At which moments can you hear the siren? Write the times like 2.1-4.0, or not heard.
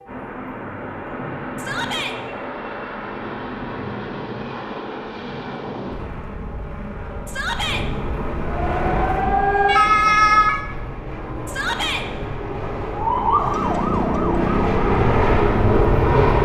8.4-10.7, 12.9-16.3.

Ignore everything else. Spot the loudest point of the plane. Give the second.
16 s.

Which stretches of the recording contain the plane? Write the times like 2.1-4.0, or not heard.
0.0-16.3.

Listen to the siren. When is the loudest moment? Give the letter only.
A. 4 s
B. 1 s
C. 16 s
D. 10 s
D.